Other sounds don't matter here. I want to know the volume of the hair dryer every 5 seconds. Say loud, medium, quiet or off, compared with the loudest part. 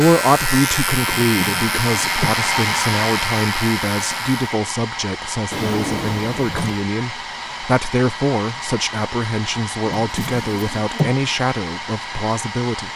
loud, medium, medium.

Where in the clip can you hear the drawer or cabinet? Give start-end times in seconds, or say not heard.
1.1-2.3, 5.5-6.8, 9.8-11.2.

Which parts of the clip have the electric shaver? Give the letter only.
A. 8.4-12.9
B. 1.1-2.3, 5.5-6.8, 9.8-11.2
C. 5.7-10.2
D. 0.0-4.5
D.